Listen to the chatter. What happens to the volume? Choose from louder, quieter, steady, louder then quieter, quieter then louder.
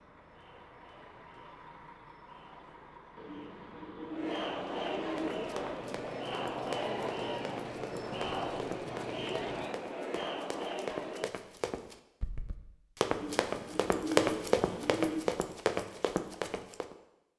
louder.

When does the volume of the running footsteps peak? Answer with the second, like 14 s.
14 s.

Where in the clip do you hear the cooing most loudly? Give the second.
14 s.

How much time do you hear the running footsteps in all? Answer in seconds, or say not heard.
12 s.